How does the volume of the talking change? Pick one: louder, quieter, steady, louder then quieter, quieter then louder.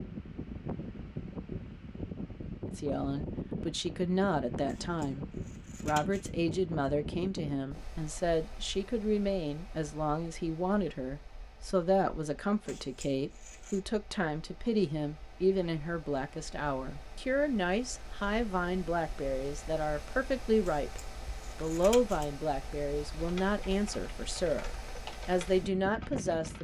steady.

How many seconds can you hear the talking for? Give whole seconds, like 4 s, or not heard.
24 s.